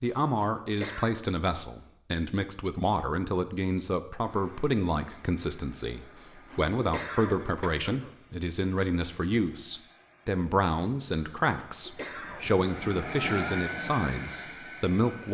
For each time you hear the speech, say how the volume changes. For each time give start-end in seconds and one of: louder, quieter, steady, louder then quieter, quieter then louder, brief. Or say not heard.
0.0-15.2 steady.